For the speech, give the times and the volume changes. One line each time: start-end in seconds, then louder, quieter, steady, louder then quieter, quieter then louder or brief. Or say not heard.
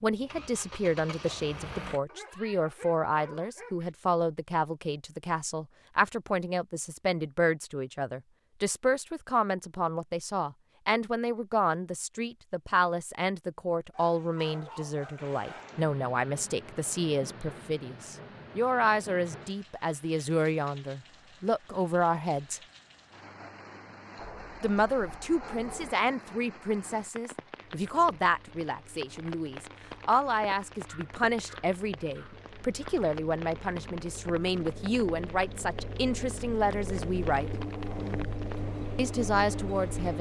0.0-22.6 steady
24.6-37.5 steady
39.0-40.1 brief.